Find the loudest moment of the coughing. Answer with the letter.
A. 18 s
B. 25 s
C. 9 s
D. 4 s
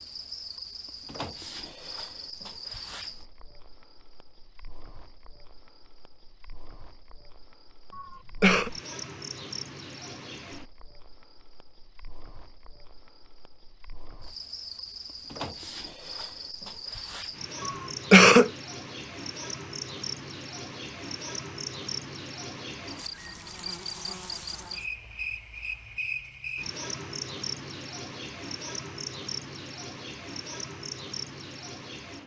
A.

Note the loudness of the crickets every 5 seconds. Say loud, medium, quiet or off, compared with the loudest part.
medium, medium, medium, loud, loud, loud, loud.